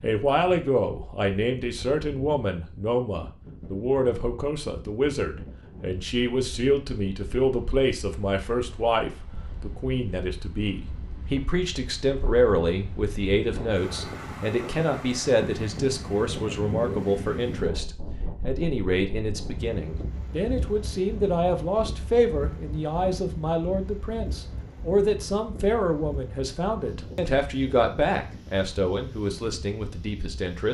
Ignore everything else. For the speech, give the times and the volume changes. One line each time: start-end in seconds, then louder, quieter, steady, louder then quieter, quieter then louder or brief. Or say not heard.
0.0-30.6 steady.